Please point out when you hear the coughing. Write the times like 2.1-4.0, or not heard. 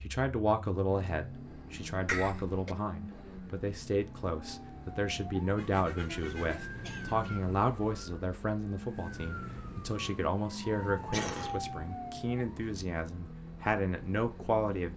2.0-2.8, 6.3-7.5, 11.1-11.6.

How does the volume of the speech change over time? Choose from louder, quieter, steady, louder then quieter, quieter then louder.
steady.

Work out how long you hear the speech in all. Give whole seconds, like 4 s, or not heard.
15 s.